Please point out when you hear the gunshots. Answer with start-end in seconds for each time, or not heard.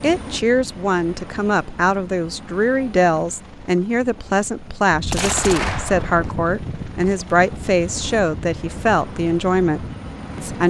5.1-6.3.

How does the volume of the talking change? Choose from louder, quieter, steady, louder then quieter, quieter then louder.
steady.